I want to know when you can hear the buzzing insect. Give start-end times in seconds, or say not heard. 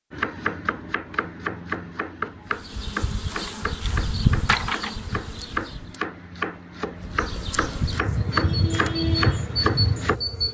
2.5-6.0, 7.0-10.5.